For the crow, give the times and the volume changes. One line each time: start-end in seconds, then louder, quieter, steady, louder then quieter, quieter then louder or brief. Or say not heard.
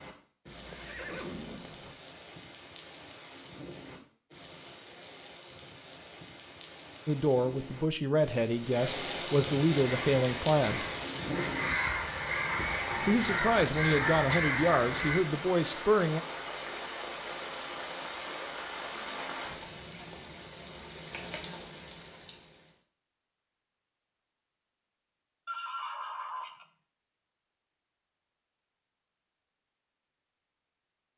9.8-15.2 louder.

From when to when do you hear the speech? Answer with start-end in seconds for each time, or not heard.
7.0-10.8, 13.0-16.2.